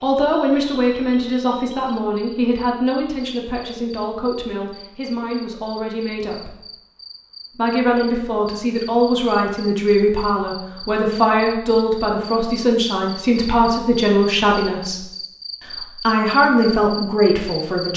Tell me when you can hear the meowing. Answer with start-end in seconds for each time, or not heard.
not heard.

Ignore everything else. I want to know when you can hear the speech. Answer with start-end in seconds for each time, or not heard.
0.0-6.5, 7.5-15.1, 15.7-17.9.